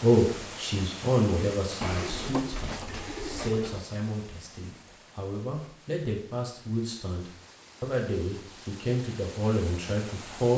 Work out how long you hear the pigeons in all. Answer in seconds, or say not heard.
2 s.